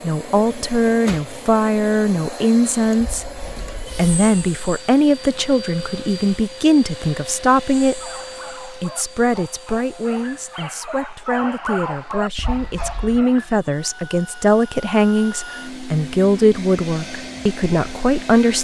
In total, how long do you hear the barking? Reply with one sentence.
You can hear the barking for 6 seconds altogether.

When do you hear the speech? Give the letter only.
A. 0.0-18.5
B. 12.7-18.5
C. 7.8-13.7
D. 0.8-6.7
A.